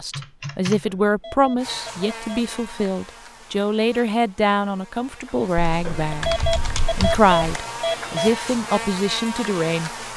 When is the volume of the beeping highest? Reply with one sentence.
The volume of the beeping peaks at 7 seconds.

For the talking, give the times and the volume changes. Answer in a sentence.
The talking can be heard from 0.0 to 10.1 s, at a steady volume.